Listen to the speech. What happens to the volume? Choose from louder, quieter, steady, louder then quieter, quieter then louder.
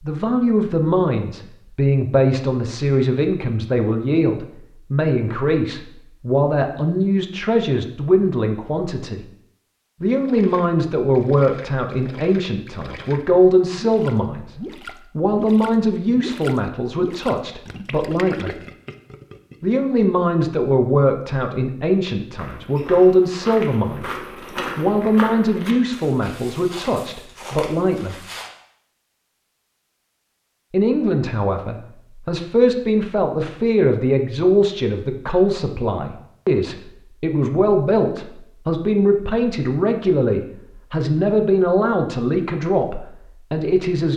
steady.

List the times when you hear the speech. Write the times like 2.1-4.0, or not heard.
0.0-9.2, 10.0-14.6, 15.2-18.6, 19.6-24.1, 24.8-28.1, 30.7-44.1.